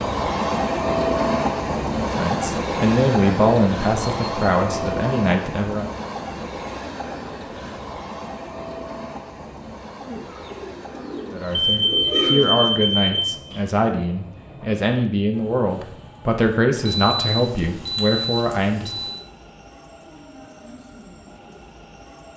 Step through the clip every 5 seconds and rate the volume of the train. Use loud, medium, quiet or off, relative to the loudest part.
loud, medium, quiet, quiet, quiet.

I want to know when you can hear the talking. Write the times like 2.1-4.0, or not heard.
2.1-5.9, 11.3-18.9.